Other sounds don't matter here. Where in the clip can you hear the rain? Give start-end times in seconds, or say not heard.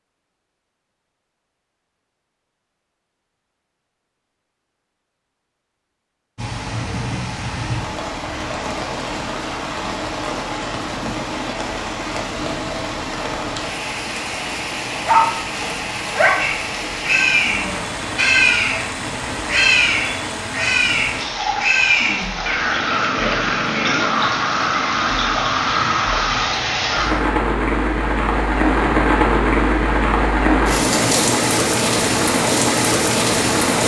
6.3-33.8.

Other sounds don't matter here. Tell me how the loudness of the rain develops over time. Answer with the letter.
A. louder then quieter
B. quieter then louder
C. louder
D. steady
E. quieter
C.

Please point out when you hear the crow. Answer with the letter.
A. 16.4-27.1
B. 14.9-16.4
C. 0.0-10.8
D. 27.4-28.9
A.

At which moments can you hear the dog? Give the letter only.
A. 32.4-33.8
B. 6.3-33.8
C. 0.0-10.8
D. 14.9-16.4
D.